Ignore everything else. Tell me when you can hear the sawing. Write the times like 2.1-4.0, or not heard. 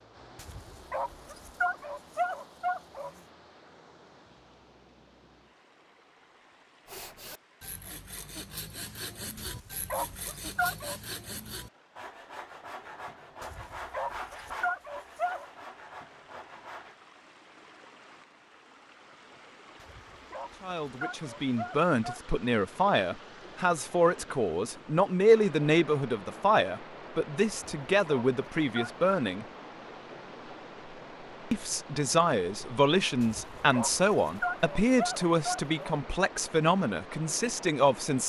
6.8-16.9.